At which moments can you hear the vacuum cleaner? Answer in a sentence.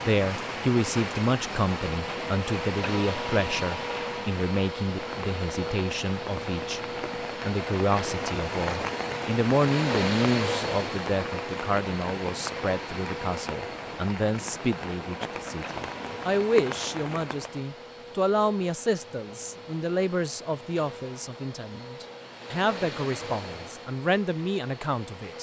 The vacuum cleaner can be heard from 0.0 to 25.3 s.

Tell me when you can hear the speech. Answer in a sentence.
You can hear the speech from 0.0 to 6.8 s and from 7.5 to 25.3 s.